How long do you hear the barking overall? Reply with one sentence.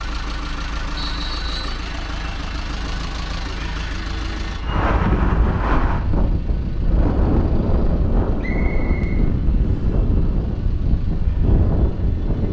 The barking can't be heard in this clip.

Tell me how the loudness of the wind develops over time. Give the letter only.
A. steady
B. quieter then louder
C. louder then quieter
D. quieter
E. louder
E.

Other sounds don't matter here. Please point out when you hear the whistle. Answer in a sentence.
The whistle can be heard from 0.9 to 1.8 s and from 8.4 to 9.9 s.